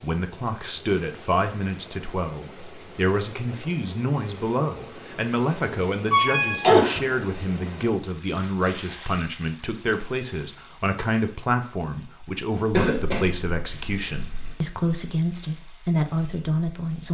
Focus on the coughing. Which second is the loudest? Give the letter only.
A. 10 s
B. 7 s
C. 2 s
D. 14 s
B.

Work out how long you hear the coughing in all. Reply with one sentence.
The coughing can be heard for 3 seconds in total.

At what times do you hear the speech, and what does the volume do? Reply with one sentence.
You can hear the speech from 0.0 to 17.0 s, at a steady volume.